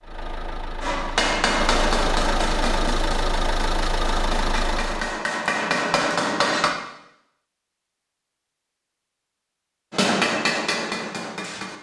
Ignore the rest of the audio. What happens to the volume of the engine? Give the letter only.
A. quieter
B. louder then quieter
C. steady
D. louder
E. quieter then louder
D.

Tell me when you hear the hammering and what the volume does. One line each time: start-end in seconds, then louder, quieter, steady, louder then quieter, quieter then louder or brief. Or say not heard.
0.8-6.8 quieter then louder
9.9-11.7 brief.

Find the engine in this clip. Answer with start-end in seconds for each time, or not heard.
0.0-5.2.